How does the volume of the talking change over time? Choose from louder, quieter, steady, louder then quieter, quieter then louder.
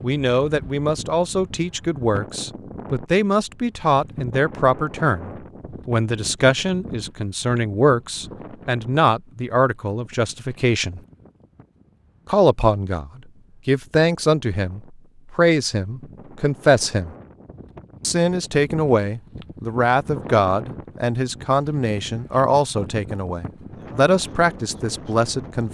steady.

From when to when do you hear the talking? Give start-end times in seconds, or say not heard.
0.0-11.0, 12.3-17.1, 18.0-25.6.